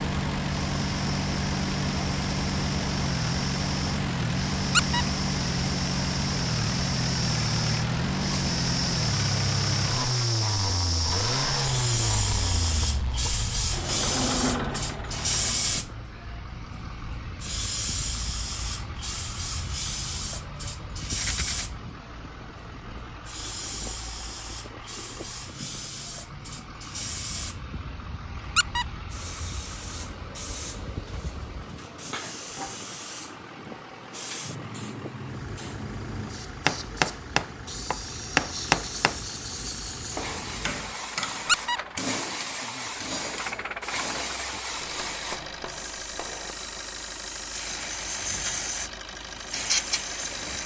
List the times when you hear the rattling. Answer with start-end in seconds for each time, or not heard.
21.1-21.6.